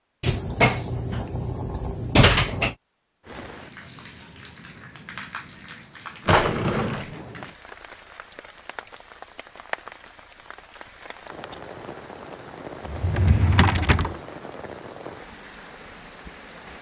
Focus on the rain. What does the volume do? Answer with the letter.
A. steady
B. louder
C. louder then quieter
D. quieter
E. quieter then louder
A.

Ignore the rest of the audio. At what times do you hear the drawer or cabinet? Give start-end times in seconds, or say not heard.
0.2-2.8, 6.2-7.0, 12.8-14.2.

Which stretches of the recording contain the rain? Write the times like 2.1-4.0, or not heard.
3.2-16.7.